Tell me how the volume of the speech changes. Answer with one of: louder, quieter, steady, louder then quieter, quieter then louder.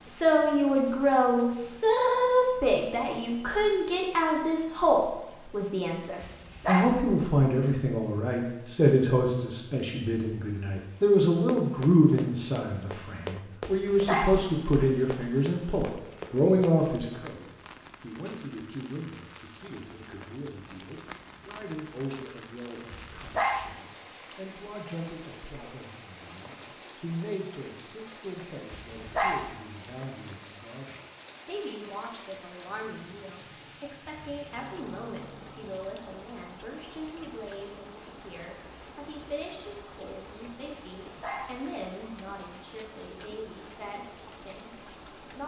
quieter.